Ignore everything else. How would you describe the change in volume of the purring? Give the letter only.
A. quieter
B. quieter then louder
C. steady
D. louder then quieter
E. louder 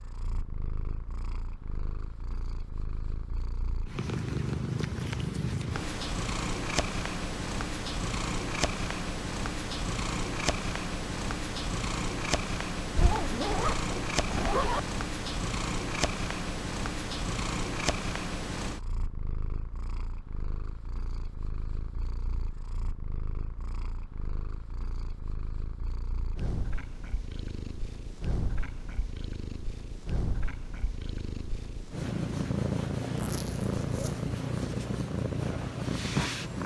B.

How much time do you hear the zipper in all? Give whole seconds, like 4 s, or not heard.
3 s.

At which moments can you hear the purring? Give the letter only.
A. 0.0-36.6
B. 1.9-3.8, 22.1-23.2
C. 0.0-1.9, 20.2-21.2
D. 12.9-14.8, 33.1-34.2
A.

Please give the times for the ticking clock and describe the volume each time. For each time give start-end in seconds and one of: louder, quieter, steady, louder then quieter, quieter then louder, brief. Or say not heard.
not heard.